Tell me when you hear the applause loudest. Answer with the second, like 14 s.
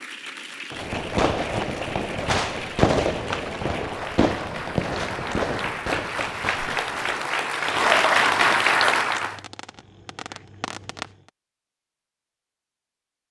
8 s.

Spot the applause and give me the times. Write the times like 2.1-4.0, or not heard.
0.0-9.4.